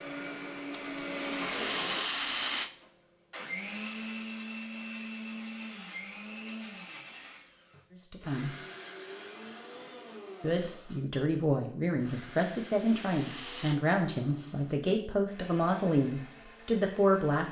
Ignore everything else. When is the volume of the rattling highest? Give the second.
2 s.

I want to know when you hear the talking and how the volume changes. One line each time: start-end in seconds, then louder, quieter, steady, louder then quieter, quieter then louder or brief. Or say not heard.
8.0-8.6 brief
10.4-17.4 steady.